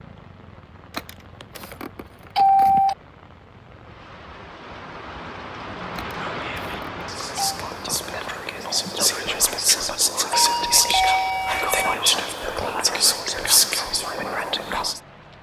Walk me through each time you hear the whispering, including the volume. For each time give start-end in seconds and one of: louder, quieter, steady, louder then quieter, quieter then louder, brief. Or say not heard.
6.2-15.0 louder.